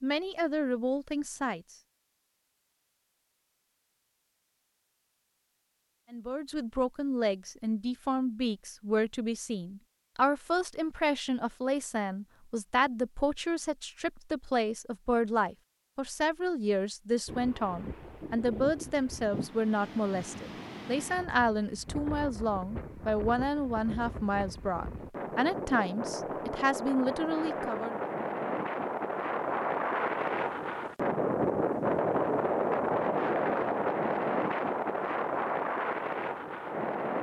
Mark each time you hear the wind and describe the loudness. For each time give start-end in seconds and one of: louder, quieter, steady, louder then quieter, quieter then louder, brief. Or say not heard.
17.2-37.1 louder.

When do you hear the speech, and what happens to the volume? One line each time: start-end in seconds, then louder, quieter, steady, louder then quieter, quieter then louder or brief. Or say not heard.
0.0-1.6 brief
6.1-27.9 steady.